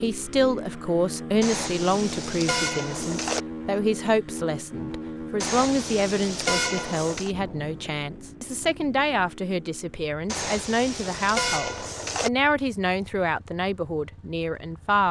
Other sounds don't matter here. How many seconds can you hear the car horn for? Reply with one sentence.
The car horn can be heard for 6 seconds in total.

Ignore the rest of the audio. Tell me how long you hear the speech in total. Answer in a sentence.
The speech can be heard for 15 seconds in total.